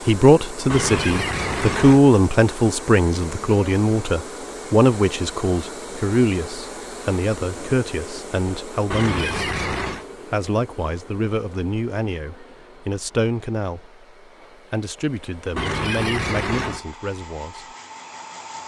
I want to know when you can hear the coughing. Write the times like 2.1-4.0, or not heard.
0.7-2.0, 8.9-10.1, 15.6-16.9.